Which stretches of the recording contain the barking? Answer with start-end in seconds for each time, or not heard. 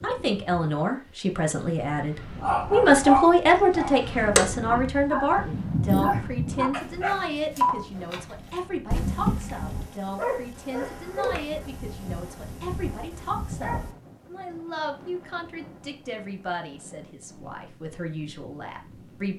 2.4-13.9.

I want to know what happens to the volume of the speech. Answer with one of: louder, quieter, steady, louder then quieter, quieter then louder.
quieter.